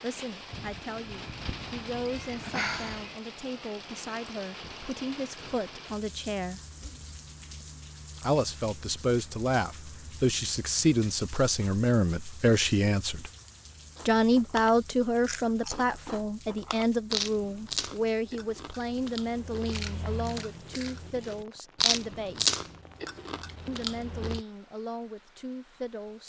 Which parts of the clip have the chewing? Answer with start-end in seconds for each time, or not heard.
13.9-24.4.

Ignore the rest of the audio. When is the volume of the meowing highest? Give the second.
3 s.